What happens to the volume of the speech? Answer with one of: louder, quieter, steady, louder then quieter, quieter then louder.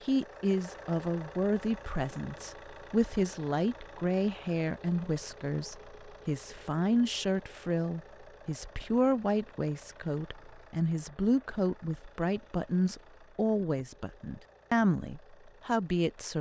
steady.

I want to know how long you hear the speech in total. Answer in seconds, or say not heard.
16 s.